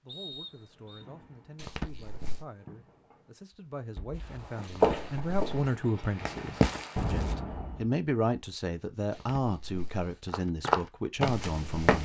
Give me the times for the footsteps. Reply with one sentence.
The footsteps can be heard from 4.5 to 7.3 s and from 10.3 to 12.0 s.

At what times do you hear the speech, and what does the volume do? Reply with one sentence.
You can hear the speech from 0.0 to 12.0 s, getting louder.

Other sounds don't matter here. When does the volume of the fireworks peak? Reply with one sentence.
The volume of the fireworks peaks at 7 seconds.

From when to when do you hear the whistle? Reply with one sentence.
You can hear the whistle from 0.1 to 1.1 s.